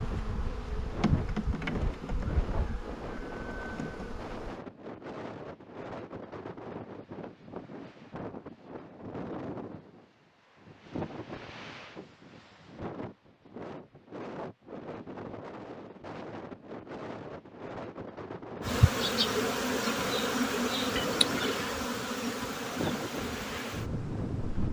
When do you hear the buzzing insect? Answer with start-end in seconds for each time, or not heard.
0.0-4.5, 18.6-24.6.